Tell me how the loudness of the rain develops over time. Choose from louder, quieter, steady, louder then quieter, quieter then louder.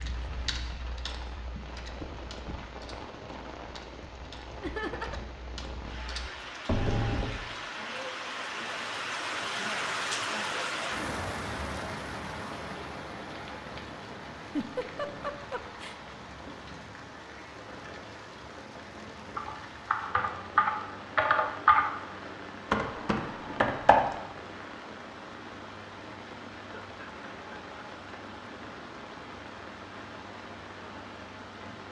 louder then quieter.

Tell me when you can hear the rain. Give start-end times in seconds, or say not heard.
0.0-31.8.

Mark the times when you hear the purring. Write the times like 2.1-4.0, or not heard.
not heard.